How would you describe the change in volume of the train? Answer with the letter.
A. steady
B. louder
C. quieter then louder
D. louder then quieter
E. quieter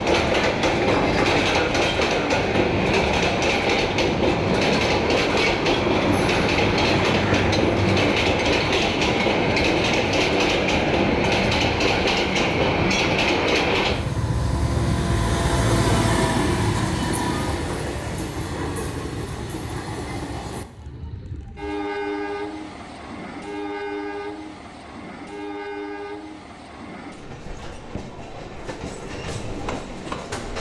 E.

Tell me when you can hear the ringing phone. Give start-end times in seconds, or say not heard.
0.8-1.4.